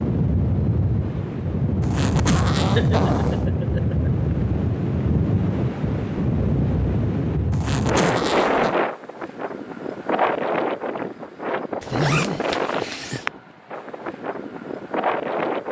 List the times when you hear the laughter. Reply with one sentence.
The laughter can be heard from 2.5 to 4.1 s and from 11.9 to 13.3 s.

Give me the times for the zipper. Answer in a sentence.
The zipper can be heard from 1.8 to 3.5 s, from 7.5 to 8.8 s and from 11.8 to 13.3 s.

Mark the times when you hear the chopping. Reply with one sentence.
You can't hear the chopping here.